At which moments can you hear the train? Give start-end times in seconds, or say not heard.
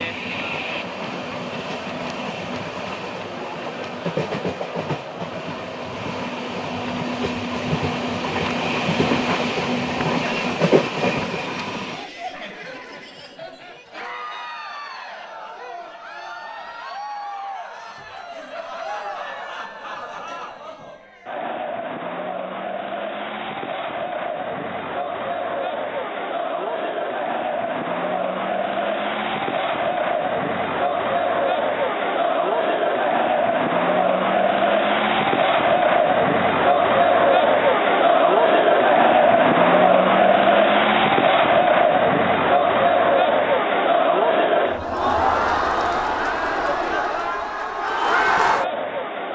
0.0-12.1.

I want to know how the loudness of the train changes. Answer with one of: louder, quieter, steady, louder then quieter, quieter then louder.
louder.